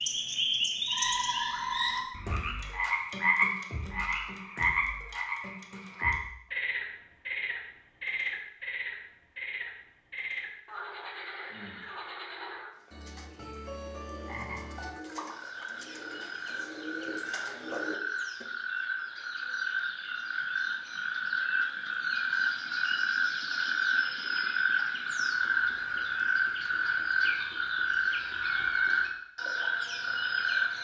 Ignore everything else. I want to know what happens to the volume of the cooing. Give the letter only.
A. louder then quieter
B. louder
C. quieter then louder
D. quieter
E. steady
B.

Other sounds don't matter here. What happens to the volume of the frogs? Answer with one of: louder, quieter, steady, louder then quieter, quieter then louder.
quieter then louder.